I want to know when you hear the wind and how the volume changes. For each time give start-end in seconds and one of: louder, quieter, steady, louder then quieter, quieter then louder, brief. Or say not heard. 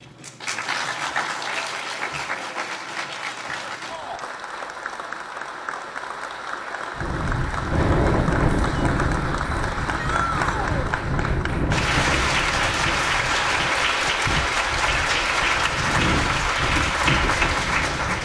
7.0-18.2 quieter then louder.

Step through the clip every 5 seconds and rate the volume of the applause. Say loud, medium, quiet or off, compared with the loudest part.
medium, medium, loud, loud.